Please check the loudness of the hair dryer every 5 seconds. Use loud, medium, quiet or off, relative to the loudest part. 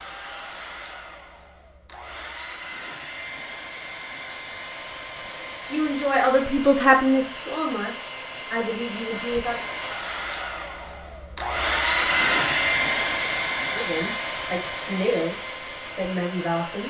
quiet, medium, loud, medium.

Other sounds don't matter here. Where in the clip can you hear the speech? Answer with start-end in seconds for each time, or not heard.
5.7-9.6, 13.7-16.8.